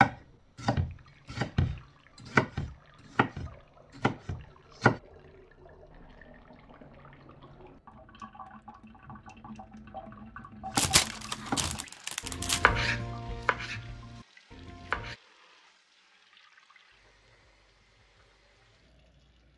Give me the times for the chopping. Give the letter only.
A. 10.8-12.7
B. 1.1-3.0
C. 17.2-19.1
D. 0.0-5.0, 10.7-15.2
D.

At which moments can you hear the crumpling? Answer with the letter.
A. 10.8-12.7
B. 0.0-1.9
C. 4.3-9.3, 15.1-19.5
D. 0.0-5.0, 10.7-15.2
A.